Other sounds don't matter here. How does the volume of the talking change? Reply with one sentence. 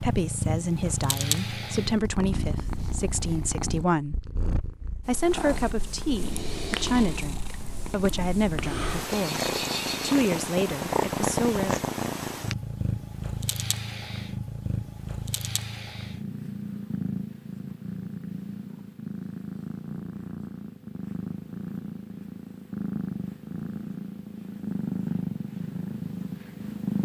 The volume of the talking stays about the same.